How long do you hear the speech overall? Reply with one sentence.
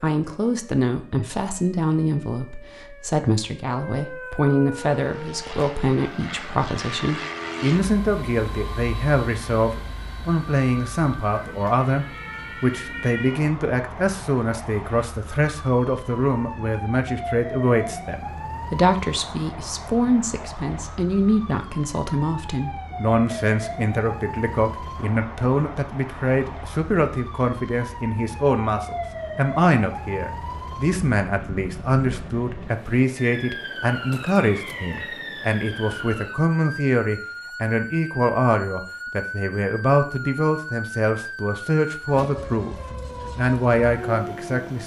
The speech can be heard for 44 seconds in total.